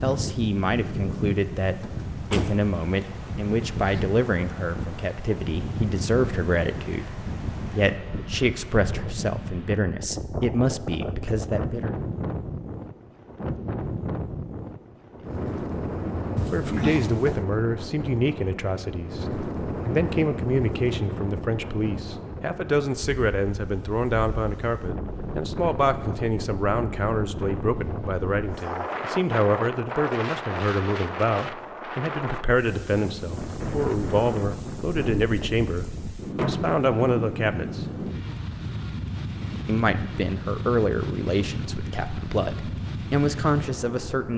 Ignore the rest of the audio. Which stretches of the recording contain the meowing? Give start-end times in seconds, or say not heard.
not heard.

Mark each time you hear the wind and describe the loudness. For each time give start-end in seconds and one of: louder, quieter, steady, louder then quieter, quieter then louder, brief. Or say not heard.
0.0-44.3 steady.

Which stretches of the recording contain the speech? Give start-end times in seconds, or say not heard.
0.0-11.9, 16.5-37.9, 39.6-44.3.